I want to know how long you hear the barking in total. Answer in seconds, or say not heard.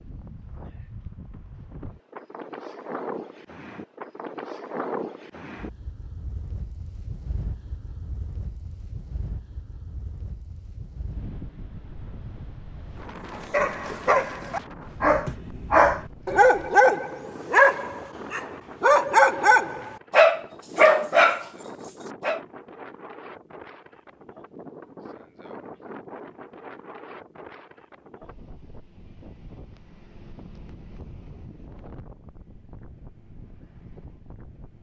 9 s.